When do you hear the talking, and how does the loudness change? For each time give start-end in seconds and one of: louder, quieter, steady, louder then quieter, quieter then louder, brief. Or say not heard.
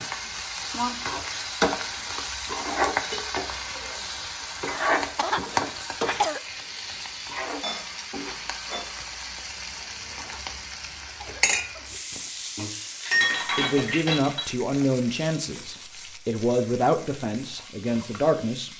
13.6-18.7 steady.